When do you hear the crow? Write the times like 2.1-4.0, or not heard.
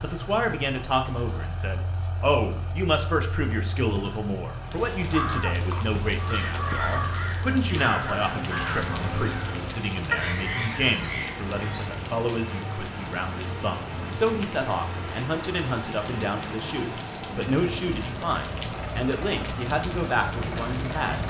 5.0-11.9.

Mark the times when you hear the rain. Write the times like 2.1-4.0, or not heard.
4.5-21.2.